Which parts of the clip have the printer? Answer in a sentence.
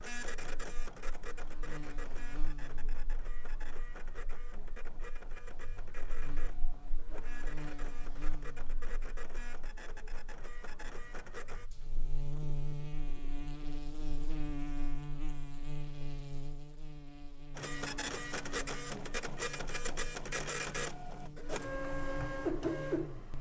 The printer can be heard from 0.0 to 11.7 s and from 17.6 to 23.3 s.